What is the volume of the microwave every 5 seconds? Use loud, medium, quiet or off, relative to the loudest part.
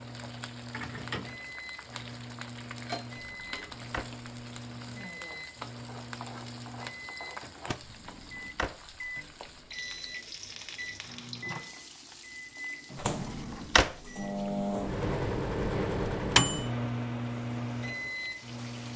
quiet, quiet, medium, loud.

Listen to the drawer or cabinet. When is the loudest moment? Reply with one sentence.
The volume of the drawer or cabinet peaks at 14 seconds.